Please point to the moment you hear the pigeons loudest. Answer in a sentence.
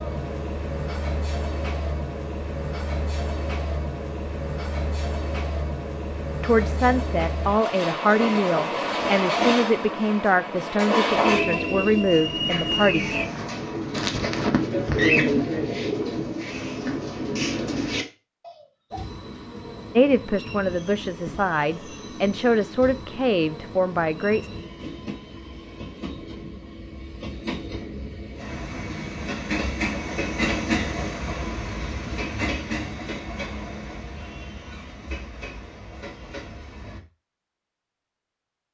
The loudest moment of the pigeons is at 15 seconds.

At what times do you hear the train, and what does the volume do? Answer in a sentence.
You can hear the train from 0.0 to 13.2 s, getting louder; and from 18.9 to 37.0 s, getting louder then quieter.